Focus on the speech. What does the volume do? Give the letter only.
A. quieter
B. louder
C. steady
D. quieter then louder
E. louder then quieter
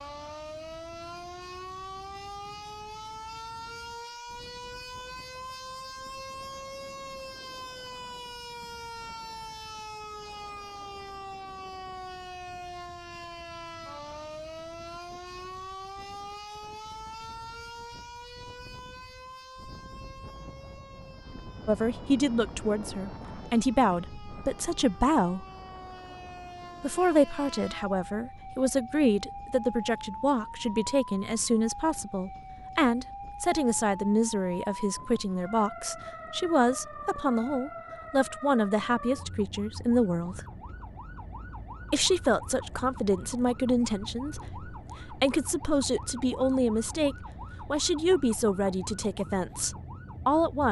C.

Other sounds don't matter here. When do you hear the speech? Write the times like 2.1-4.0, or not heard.
21.6-25.4, 26.8-40.5, 41.9-50.6.